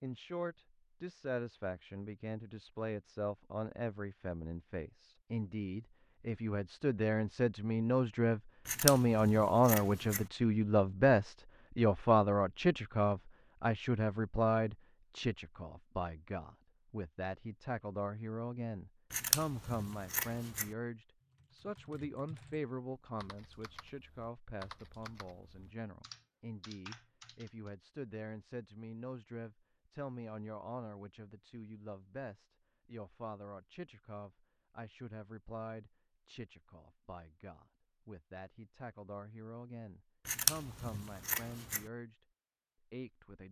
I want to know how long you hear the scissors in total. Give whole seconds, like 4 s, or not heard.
5 s.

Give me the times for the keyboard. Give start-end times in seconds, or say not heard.
21.2-27.7.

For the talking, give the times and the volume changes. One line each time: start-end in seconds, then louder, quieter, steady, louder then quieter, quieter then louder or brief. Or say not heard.
0.0-42.1 louder then quieter
42.9-43.4 brief.